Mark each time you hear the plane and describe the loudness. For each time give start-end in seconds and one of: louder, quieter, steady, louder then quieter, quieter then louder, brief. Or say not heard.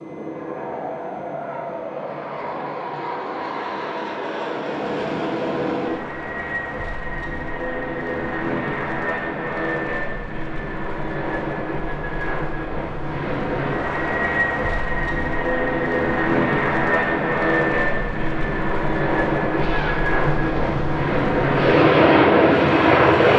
0.0-23.3 louder.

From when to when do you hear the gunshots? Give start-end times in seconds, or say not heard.
19.6-21.1.